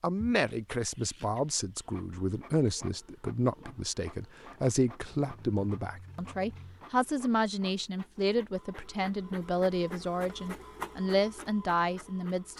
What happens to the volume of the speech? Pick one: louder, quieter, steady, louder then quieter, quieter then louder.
steady.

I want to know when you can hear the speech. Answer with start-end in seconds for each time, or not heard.
0.0-12.5.